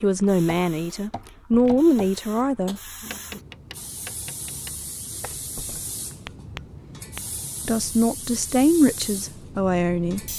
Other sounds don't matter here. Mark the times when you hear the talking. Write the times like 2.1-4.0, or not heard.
0.0-2.8, 7.7-10.3.